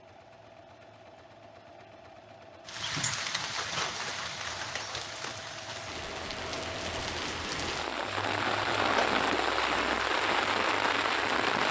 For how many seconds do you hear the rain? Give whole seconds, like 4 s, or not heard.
9 s.